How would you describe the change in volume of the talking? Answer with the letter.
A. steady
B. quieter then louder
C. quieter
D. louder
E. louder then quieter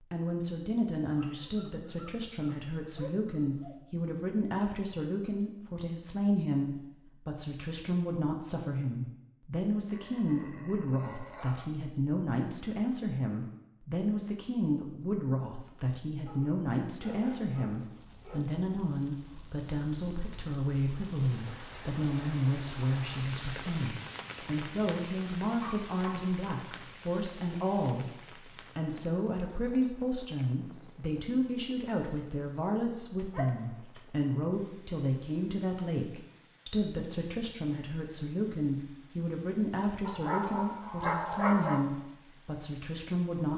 A.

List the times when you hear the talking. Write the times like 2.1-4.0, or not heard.
0.1-28.1, 28.8-43.5.